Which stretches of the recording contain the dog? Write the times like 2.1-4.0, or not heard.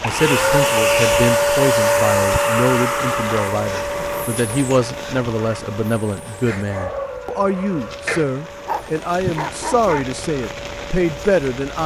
6.5-10.1.